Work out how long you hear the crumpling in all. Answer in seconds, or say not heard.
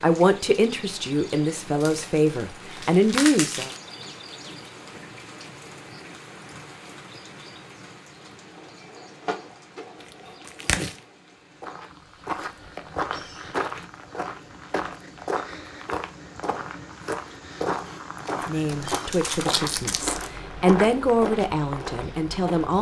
5 s.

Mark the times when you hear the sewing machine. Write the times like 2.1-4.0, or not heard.
8.2-11.2.